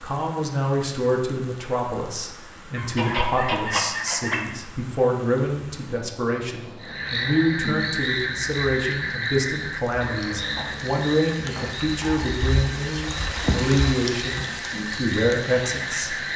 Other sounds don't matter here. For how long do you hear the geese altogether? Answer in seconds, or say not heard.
2 s.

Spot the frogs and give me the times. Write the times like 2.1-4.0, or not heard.
6.8-16.3.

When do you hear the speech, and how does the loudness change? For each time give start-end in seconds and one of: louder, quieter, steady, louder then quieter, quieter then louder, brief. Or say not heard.
0.0-16.1 steady.